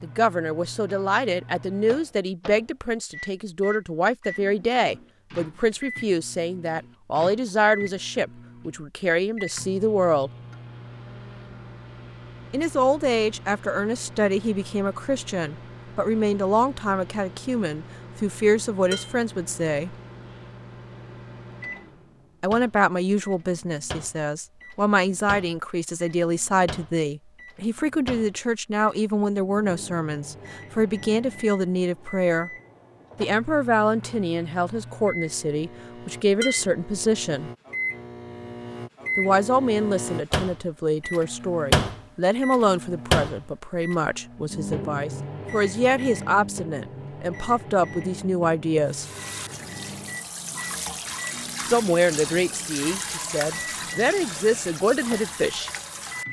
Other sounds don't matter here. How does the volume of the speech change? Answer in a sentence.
The volume of the speech stays about the same.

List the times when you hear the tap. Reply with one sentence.
The tap can be heard from 48.9 to 56.2 s.